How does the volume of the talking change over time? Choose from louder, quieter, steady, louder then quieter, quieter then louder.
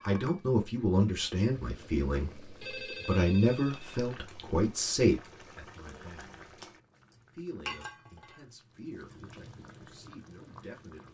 quieter.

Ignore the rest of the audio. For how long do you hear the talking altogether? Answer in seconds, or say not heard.
10 s.